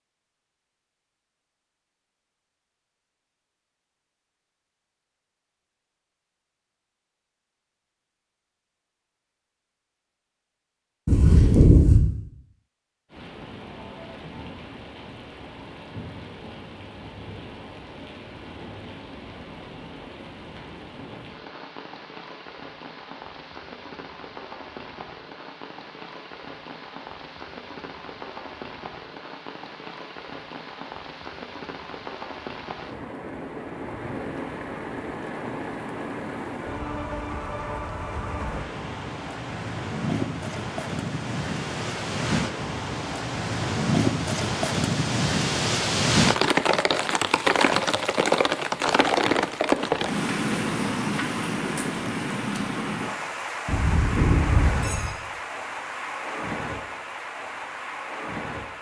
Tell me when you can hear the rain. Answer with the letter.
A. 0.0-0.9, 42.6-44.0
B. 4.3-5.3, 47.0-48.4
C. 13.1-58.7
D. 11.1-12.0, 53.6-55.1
C.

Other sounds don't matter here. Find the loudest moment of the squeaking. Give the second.
12 s.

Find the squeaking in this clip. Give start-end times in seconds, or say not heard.
11.1-12.0, 53.6-55.1.